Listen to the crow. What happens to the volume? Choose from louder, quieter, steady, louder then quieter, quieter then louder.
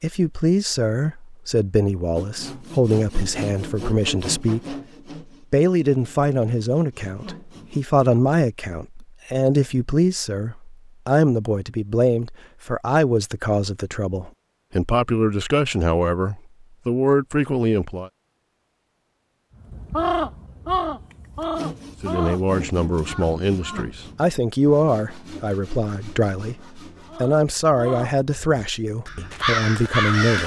quieter then louder.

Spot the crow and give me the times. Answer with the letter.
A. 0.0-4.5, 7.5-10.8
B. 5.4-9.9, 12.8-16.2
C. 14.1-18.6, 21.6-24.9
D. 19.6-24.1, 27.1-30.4
D.